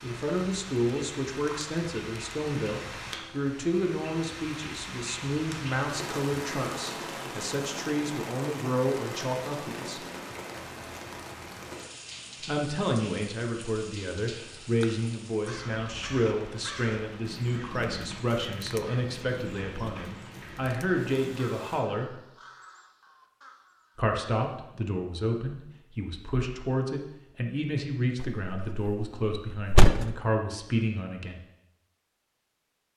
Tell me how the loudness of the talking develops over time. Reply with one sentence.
The loudness of the talking stays about the same.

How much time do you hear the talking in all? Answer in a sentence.
The talking can be heard for 27 seconds in total.